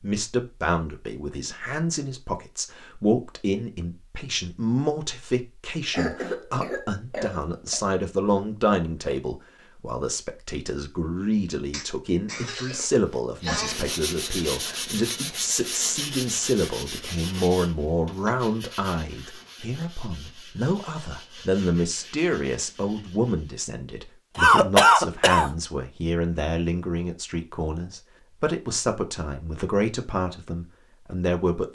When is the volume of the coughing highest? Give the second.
25 s.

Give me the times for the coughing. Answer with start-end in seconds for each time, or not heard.
5.9-7.8, 11.7-13.8, 24.4-25.5.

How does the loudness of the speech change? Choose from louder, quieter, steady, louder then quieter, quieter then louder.
steady.